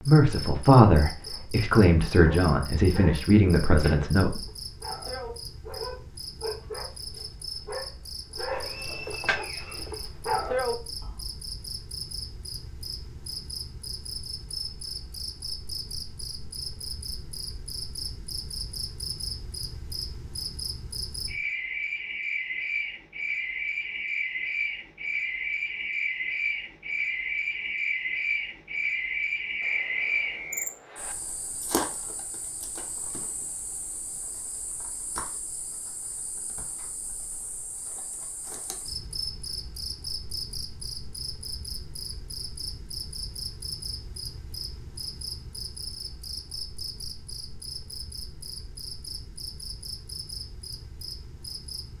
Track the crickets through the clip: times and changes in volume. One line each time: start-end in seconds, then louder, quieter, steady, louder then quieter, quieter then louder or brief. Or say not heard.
0.0-51.9 louder then quieter.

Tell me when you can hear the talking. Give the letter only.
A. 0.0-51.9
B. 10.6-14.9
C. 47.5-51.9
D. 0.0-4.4
D.